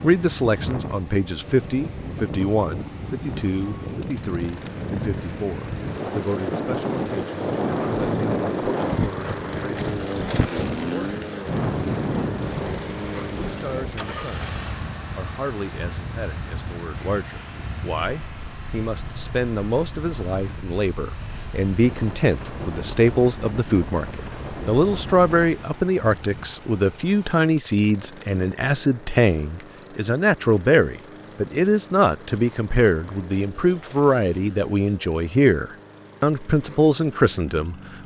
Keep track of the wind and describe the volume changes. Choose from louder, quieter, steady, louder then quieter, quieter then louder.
louder then quieter.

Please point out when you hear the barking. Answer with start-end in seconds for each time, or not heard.
not heard.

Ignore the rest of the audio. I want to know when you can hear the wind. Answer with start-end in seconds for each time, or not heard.
0.0-26.6.